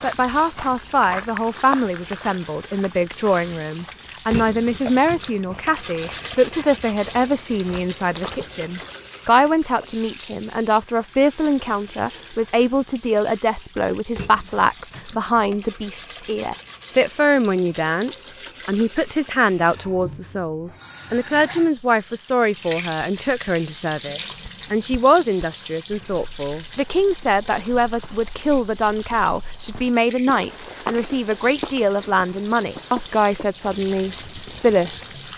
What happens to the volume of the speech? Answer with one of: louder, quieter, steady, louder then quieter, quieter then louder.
steady.